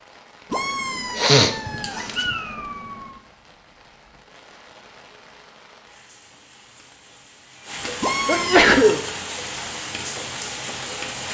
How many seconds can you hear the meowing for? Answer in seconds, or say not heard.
4 s.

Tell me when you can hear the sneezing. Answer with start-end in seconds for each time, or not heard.
1.1-2.4, 8.2-9.0.